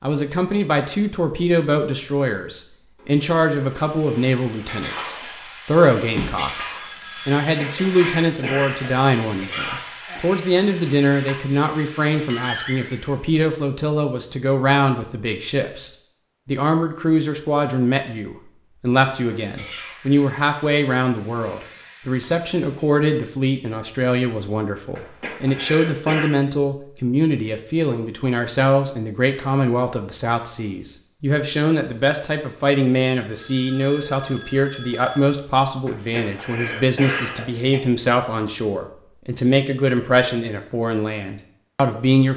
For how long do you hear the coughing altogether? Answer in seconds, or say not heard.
5 s.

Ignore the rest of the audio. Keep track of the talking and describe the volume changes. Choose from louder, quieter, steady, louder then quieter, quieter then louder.
steady.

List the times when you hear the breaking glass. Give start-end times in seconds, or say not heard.
not heard.